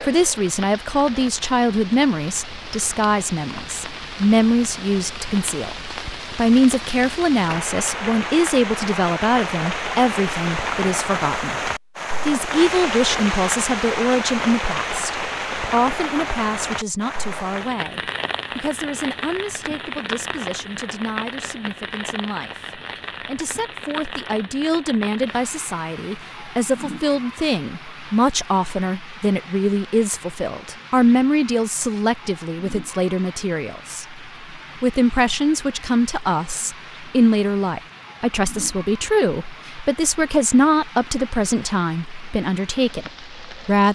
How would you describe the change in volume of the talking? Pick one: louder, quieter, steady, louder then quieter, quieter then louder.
quieter then louder.